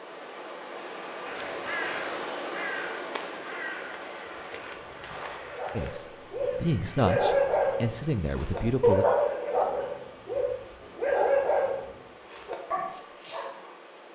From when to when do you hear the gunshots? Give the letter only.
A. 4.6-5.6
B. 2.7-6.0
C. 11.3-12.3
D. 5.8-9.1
A.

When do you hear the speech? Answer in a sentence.
You can hear the speech from 5.8 to 9.1 s.